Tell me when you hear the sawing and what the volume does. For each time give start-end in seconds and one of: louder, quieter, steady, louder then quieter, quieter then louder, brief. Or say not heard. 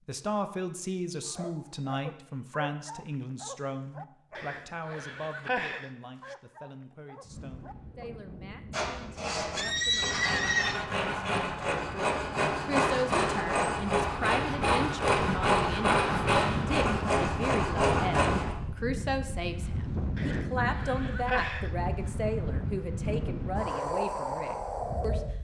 8.7-18.6 louder.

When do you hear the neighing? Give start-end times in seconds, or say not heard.
4.3-6.3, 9.6-10.8, 20.1-21.7.